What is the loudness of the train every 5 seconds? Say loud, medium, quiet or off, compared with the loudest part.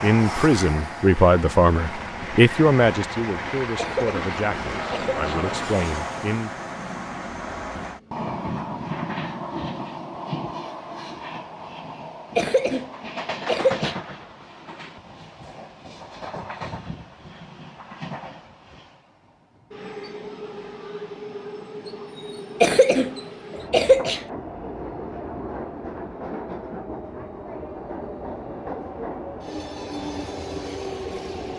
loud, loud, loud, medium, medium, loud, loud.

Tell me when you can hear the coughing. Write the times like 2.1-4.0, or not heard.
3.8-5.4, 12.3-13.9, 22.6-24.2.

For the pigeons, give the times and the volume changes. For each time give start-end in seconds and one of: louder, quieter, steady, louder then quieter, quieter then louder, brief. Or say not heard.
not heard.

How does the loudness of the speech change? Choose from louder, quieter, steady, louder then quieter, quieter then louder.
quieter.